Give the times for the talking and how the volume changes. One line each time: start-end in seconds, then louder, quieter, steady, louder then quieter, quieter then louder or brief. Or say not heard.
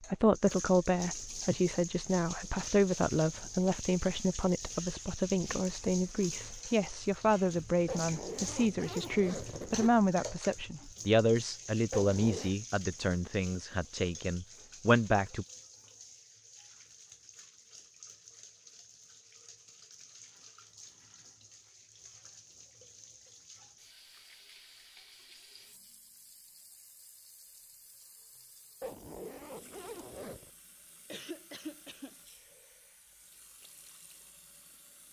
0.1-15.4 steady.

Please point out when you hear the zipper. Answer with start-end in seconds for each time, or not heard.
7.8-9.9, 11.9-12.6, 28.8-30.5.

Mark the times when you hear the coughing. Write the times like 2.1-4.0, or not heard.
31.1-32.1.